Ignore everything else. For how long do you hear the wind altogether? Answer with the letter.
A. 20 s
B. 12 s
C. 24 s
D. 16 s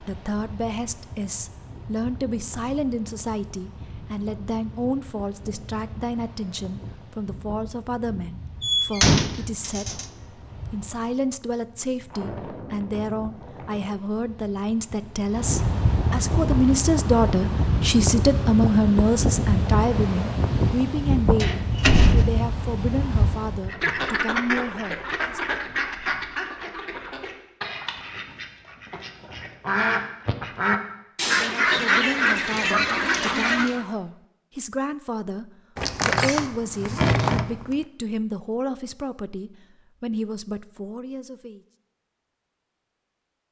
C.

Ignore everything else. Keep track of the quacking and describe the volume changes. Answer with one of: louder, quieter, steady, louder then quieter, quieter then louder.
quieter then louder.